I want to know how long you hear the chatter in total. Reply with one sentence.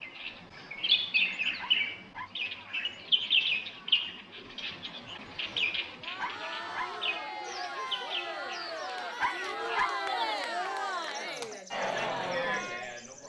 The chatter can be heard for 8 seconds in total.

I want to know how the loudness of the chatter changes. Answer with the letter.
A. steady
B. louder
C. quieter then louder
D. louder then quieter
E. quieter
B.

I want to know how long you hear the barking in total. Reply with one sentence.
You can hear the barking for 2 seconds altogether.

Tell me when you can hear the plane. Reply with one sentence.
You can't hear the plane here.